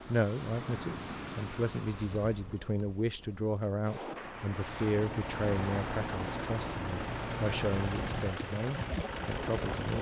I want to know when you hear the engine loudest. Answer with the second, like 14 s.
8 s.